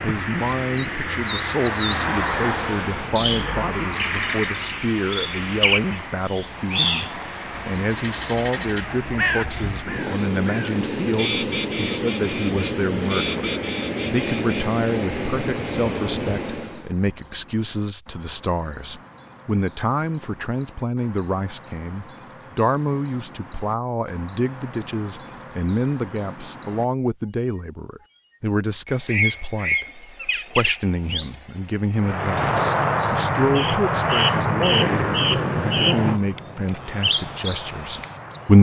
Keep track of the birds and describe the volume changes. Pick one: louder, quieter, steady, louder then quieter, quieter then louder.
quieter then louder.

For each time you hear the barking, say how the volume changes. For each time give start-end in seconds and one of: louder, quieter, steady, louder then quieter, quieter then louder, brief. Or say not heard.
not heard.